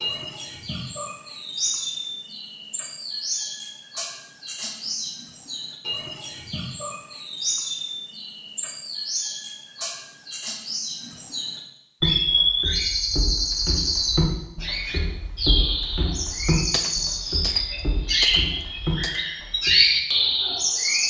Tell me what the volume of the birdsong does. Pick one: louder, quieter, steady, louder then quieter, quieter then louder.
louder.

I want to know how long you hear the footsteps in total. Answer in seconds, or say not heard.
8 s.